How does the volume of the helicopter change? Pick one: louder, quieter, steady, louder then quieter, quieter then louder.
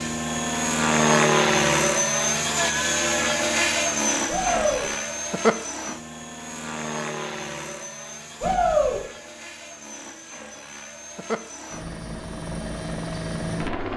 quieter then louder.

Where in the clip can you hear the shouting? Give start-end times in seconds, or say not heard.
4.2-4.8, 8.4-9.0.